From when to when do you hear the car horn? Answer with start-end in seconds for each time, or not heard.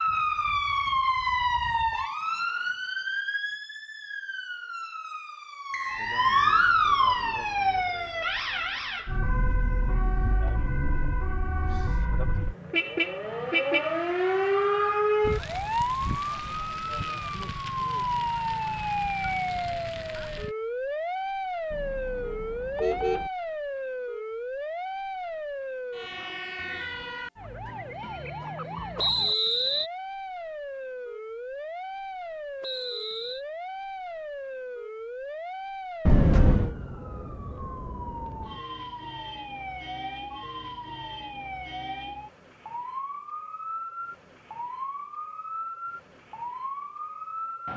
11.8-13.9, 21.7-23.3, 36.0-36.8.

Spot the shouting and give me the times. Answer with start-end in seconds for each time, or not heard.
not heard.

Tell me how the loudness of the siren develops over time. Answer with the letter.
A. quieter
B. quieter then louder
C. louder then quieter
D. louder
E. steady
A.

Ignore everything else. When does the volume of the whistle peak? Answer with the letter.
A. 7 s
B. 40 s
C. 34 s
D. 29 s
D.